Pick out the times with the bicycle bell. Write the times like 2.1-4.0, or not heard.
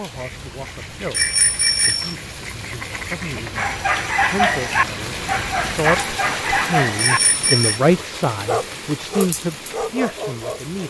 1.1-2.1, 7.0-7.8.